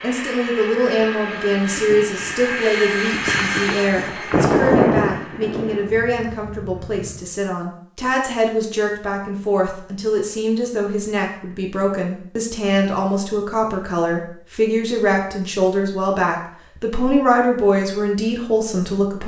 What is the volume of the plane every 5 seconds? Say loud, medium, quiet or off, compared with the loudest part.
loud, medium, off, off.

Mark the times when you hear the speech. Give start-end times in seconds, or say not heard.
0.0-19.2.